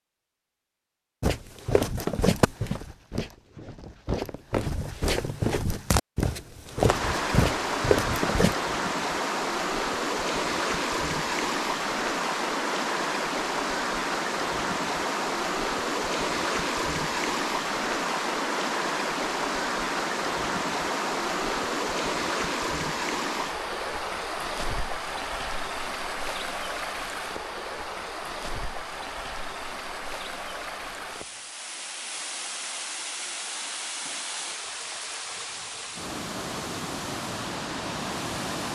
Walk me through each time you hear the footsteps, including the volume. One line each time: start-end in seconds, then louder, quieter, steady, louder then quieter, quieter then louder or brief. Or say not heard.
1.2-8.6 quieter then louder.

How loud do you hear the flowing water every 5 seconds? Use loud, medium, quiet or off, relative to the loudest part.
off, loud, loud, loud, loud, medium, medium, medium.